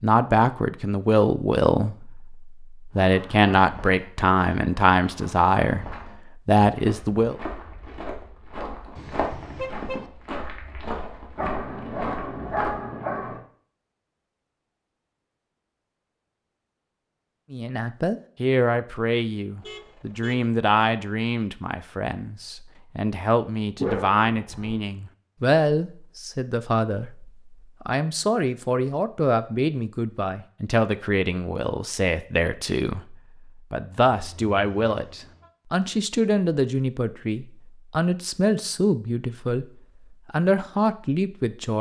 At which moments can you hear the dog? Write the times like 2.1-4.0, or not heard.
11.3-13.4, 23.8-24.8.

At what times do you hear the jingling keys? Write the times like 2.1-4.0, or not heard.
not heard.